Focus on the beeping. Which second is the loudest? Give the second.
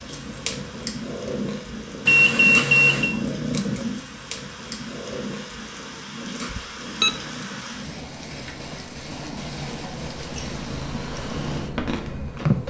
3 s.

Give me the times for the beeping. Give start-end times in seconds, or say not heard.
2.0-3.1, 6.5-7.2.